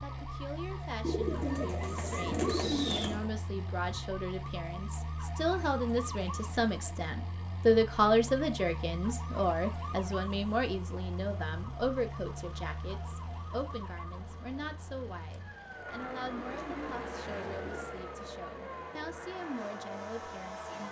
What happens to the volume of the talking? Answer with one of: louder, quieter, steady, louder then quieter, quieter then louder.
louder then quieter.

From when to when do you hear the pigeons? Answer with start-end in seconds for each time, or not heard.
1.0-3.3, 15.8-17.9.